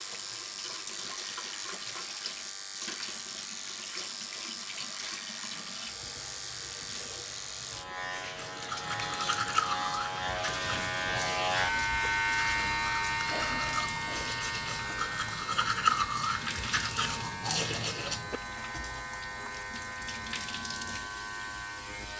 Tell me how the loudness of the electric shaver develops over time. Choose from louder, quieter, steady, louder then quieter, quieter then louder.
louder then quieter.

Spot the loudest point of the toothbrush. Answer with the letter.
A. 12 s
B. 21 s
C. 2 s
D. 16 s
D.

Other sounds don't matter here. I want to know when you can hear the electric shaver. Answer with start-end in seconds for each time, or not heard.
0.0-22.1.